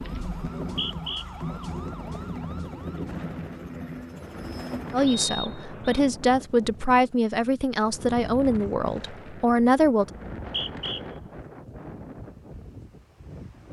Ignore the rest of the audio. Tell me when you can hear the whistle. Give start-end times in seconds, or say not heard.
0.6-1.6, 5.0-6.0, 10.2-11.0.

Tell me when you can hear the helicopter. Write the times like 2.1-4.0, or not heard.
0.0-5.1.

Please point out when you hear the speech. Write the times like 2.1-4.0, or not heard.
4.9-10.1.